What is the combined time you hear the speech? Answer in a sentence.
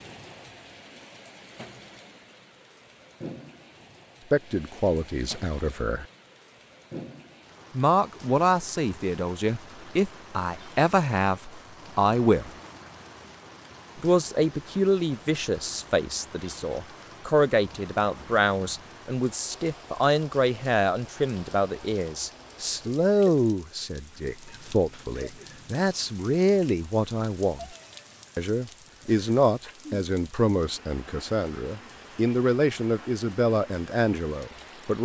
The speech can be heard for 27 seconds in total.